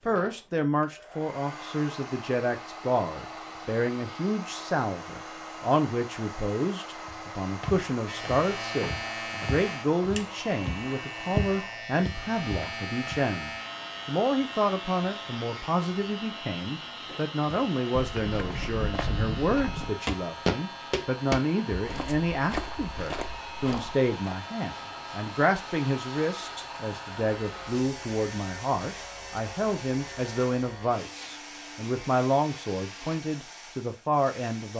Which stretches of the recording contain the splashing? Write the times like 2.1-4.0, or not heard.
not heard.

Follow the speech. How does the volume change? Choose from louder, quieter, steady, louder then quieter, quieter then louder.
steady.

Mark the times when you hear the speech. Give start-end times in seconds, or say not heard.
0.1-34.7.